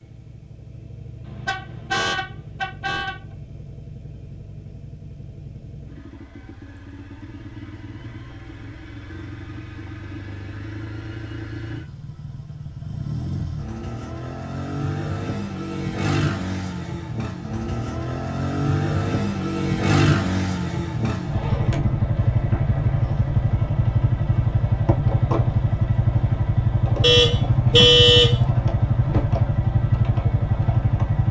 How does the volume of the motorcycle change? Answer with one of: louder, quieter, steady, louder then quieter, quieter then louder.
louder.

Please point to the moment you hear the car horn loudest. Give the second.
28 s.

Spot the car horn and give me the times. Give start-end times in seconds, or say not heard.
1.2-3.1, 27.0-28.4.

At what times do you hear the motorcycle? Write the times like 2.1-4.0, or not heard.
0.0-31.2.